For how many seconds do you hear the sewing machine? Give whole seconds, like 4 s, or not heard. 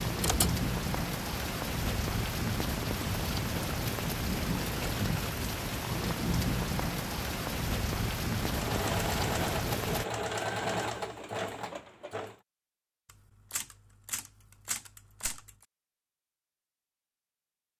4 s.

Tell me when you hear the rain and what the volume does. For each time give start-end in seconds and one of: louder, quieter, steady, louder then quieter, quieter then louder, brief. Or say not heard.
0.0-10.1 steady.